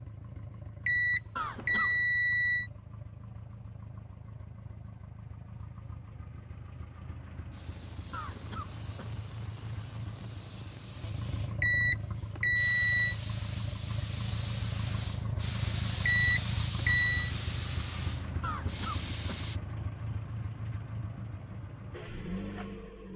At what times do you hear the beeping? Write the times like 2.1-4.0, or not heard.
0.8-2.7, 11.6-13.2, 16.1-17.3.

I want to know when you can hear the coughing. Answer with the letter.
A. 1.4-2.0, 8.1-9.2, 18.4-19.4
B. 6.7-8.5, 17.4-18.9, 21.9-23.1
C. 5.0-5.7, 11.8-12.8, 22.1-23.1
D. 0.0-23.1
A.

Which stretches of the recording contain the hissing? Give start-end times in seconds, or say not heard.
7.5-19.6.